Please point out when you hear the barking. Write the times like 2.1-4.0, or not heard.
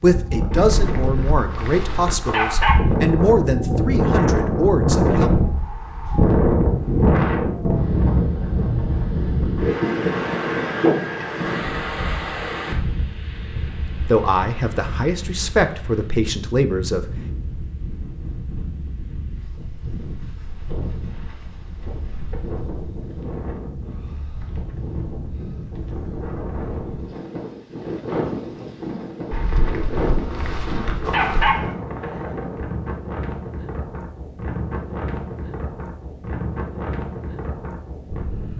0.5-2.8, 29.3-31.7.